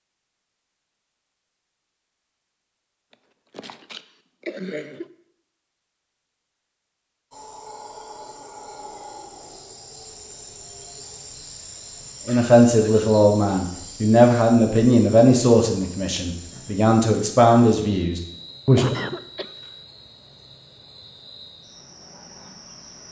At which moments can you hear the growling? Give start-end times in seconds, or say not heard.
not heard.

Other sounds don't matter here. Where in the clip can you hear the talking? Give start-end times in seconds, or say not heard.
12.2-18.9.